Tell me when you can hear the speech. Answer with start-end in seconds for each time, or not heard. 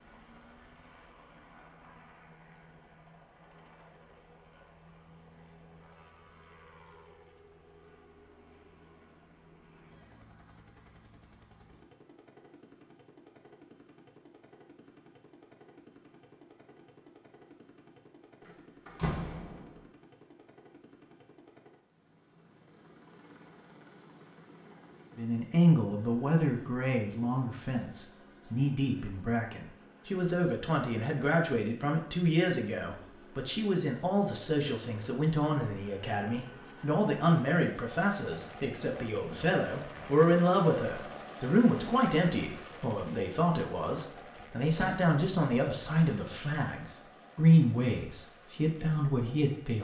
25.1-49.7.